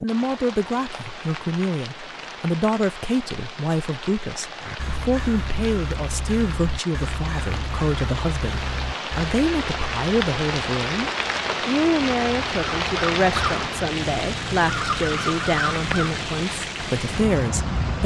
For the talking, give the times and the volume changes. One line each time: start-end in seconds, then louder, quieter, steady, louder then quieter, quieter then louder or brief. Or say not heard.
0.0-18.0 steady.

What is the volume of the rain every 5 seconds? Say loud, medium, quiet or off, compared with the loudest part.
medium, medium, loud, loud.